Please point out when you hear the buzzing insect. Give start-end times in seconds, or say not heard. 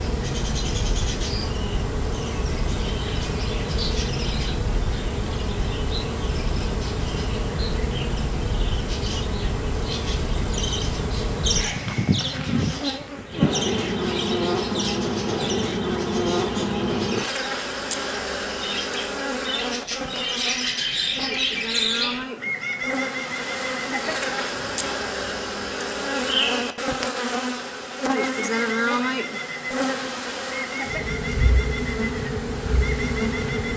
0.0-33.7.